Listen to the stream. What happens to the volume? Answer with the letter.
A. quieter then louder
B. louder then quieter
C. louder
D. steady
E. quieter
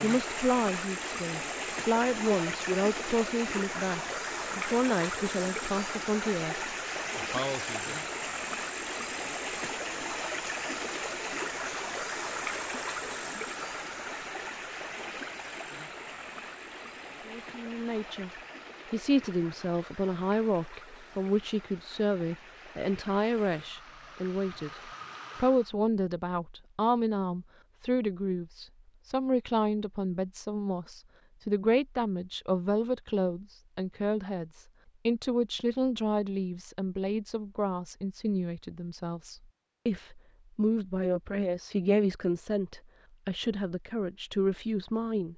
E.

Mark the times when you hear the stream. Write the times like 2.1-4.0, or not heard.
0.0-25.8.